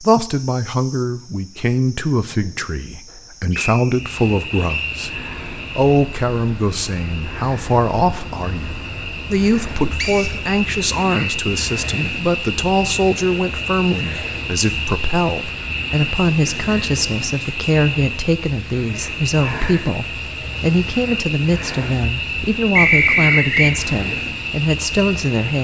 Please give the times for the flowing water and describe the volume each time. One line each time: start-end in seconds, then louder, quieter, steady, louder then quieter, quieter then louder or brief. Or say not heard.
not heard.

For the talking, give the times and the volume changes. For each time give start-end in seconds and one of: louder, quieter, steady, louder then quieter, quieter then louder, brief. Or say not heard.
0.0-25.6 steady.